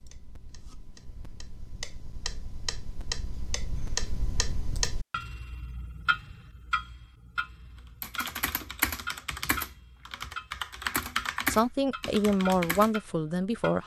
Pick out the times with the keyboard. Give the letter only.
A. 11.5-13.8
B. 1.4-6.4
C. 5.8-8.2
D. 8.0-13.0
D.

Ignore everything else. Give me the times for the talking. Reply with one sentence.
The talking can be heard from 11.5 to 13.8 s.